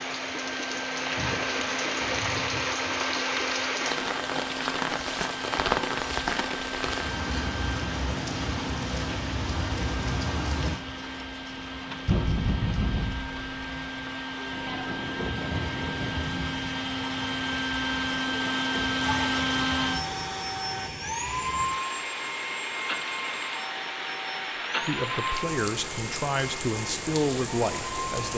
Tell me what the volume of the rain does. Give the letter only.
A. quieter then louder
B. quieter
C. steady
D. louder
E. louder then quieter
A.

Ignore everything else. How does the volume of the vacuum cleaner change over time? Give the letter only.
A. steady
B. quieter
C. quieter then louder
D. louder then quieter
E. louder
D.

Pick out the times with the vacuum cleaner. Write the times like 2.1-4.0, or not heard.
0.0-28.3.